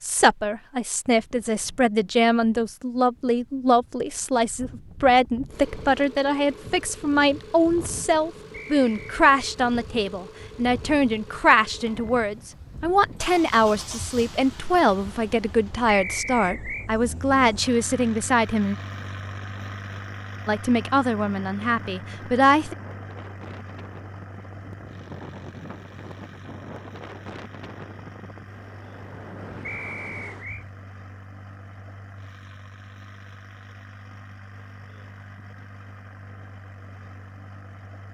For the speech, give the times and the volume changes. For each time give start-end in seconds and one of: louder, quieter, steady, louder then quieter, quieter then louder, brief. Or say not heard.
0.0-18.8 steady
20.4-22.8 brief.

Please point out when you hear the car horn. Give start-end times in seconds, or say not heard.
not heard.